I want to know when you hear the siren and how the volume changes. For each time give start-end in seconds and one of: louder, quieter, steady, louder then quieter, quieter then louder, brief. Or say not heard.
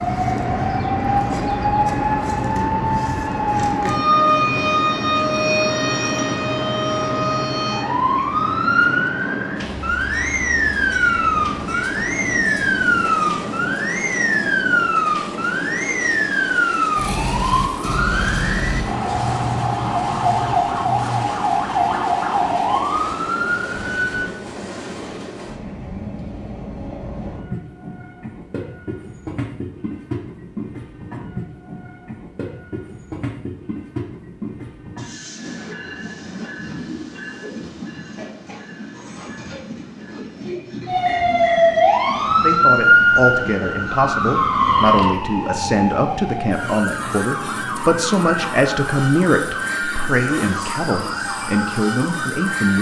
0.0-24.3 steady
40.9-52.7 quieter.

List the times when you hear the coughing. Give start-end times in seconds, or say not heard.
not heard.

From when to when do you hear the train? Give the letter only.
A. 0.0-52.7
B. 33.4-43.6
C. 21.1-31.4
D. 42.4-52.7
A.